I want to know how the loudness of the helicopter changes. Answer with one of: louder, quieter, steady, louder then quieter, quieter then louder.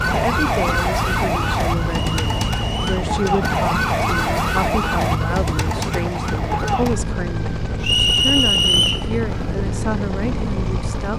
steady.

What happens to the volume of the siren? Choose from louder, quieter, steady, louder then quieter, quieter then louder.
quieter.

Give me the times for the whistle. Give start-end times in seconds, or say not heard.
2.1-3.0, 7.8-9.1.